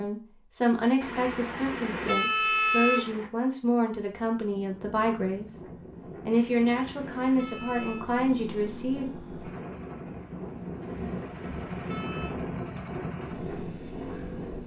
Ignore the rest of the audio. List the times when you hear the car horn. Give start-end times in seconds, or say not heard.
1.0-3.3, 6.3-8.1, 10.8-12.3.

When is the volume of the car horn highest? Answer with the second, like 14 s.
3 s.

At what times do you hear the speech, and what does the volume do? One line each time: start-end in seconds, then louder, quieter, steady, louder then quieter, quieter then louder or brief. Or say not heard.
0.0-9.2 steady.